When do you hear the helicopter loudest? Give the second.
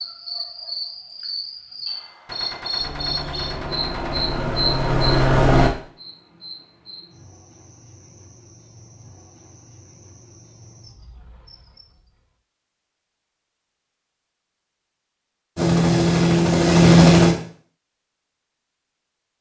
17 s.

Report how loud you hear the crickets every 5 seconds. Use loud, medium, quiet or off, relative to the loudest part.
loud, quiet, quiet, off.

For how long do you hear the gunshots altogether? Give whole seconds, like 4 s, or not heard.
2 s.